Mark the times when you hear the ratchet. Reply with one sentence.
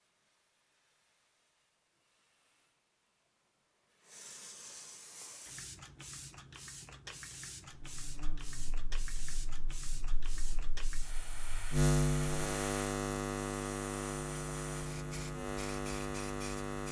You can't hear the ratchet here.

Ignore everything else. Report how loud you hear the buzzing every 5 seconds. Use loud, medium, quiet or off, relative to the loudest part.
off, quiet, loud, loud.